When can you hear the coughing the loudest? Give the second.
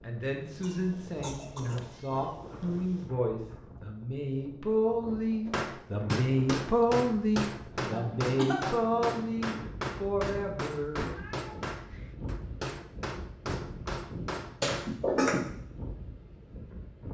15 s.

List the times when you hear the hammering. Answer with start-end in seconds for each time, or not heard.
5.5-14.9.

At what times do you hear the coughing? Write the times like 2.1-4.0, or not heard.
0.6-1.9, 7.9-8.6, 14.6-15.4.